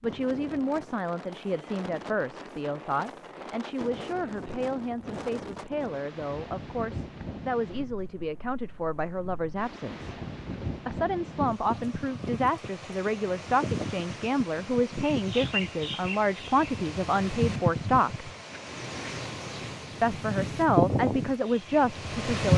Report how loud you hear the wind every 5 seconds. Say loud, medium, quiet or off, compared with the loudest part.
quiet, quiet, medium, medium, loud.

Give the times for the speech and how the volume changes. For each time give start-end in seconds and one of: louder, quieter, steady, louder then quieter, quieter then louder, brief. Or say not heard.
0.0-10.2 steady
10.8-18.3 steady
20.0-22.5 brief.